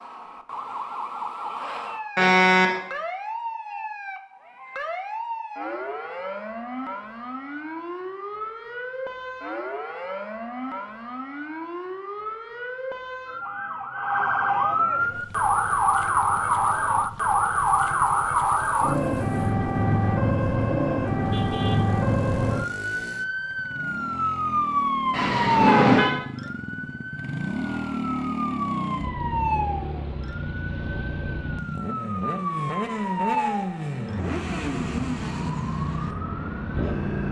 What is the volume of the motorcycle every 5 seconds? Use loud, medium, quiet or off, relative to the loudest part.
off, off, off, quiet, medium, loud, loud, loud.